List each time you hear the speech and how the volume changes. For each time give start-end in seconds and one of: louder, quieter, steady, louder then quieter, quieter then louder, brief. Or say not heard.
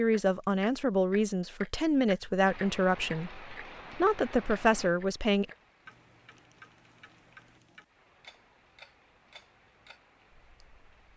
0.0-5.5 steady.